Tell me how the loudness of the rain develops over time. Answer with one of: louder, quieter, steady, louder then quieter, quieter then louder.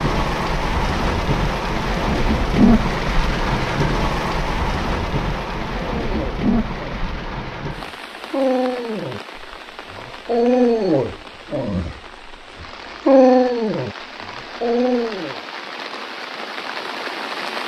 quieter then louder.